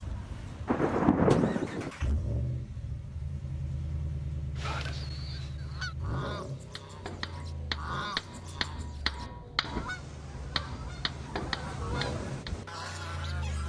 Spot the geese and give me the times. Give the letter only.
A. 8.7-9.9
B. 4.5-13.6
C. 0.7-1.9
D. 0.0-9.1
B.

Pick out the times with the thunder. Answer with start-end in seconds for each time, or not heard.
0.7-1.9.